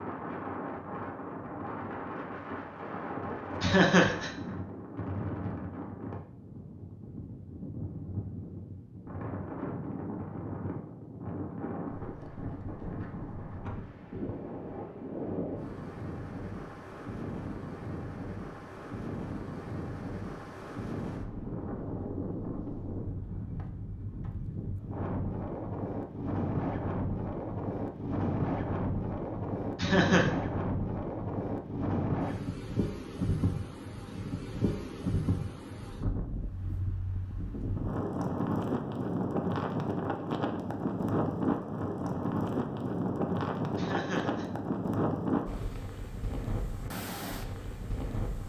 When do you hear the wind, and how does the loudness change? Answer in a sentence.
The wind can be heard from 0.0 to 48.4 s, getting louder.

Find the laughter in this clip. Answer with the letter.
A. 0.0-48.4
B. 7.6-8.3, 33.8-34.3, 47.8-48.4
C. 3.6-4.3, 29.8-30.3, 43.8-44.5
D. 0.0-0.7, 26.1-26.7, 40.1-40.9
C.